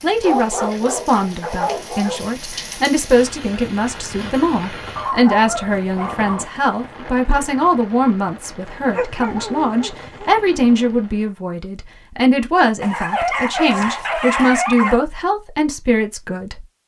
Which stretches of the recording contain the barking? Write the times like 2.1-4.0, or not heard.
0.2-2.2, 5.0-6.5, 8.9-10.3, 12.8-15.0.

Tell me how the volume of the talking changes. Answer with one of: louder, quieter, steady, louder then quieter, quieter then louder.
steady.